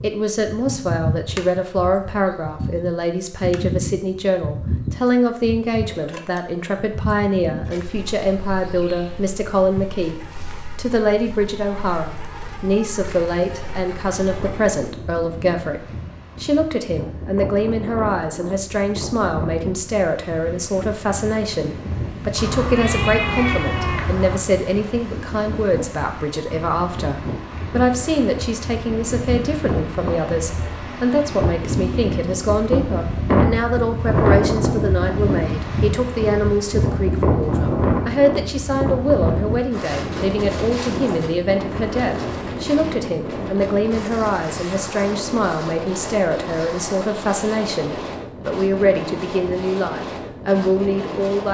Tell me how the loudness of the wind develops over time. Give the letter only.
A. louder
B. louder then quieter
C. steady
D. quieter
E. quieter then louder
B.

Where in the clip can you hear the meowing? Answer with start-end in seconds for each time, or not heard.
22.4-24.4.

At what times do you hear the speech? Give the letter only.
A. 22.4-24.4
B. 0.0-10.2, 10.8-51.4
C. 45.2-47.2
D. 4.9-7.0
B.